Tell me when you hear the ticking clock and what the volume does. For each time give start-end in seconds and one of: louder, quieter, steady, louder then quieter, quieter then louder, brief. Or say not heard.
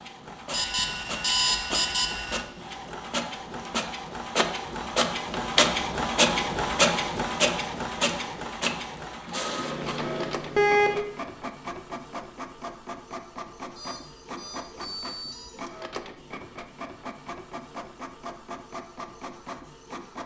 not heard.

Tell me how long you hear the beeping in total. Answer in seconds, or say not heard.
5 s.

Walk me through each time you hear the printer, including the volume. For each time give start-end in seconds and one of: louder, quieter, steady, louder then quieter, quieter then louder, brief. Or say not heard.
0.0-20.2 louder then quieter.